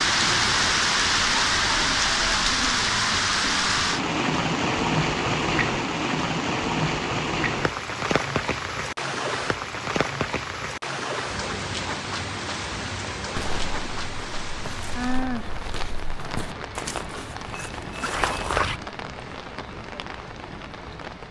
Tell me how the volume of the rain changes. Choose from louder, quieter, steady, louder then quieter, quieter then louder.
quieter.